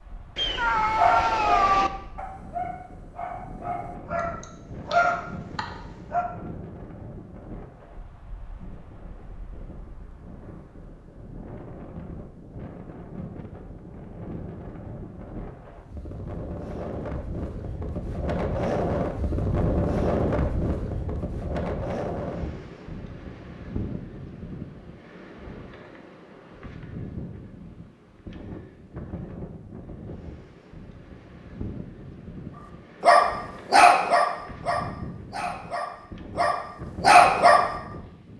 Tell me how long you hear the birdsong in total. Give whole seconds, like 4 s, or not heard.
not heard.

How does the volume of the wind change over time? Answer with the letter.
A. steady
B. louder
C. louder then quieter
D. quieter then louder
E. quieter
C.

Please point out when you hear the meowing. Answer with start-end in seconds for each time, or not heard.
0.3-1.9.